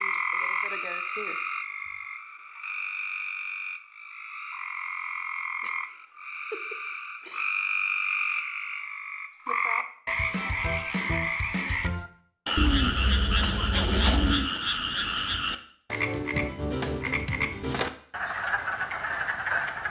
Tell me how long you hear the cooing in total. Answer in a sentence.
You can hear the cooing for 2 seconds altogether.